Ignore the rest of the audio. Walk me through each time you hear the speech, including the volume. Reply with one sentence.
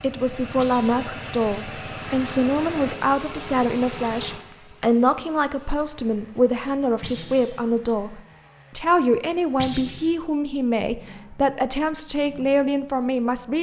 You can hear the speech from 0.0 to 13.5 s, at a steady volume.